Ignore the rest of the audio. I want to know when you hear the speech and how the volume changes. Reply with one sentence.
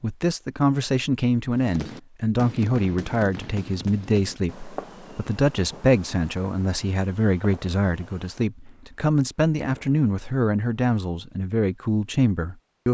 You can hear the speech from 0.0 to 12.8 s, at a steady volume.